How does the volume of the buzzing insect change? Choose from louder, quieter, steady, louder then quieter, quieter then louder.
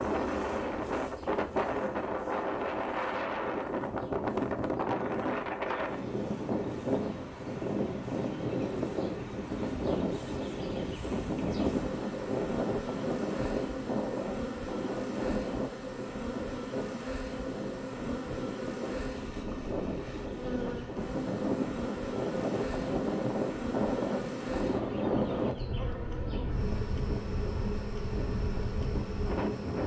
louder.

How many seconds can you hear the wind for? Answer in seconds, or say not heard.
30 s.